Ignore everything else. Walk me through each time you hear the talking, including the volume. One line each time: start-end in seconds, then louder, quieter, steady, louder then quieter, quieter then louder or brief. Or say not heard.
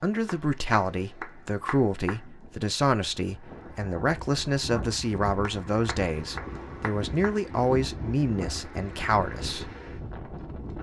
0.0-9.7 steady.